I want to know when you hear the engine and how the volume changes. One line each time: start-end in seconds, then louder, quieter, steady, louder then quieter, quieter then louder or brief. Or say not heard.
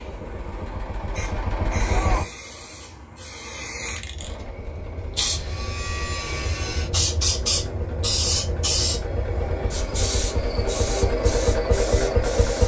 0.0-2.2 brief
4.2-12.6 louder.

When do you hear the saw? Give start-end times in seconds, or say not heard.
5.3-6.9.